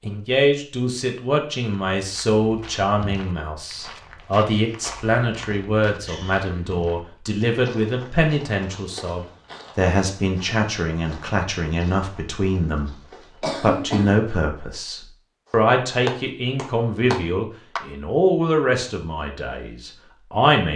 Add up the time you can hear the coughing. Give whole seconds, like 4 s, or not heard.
2 s.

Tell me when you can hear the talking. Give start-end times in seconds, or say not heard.
0.0-20.7.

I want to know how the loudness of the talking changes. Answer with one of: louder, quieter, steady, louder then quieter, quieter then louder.
steady.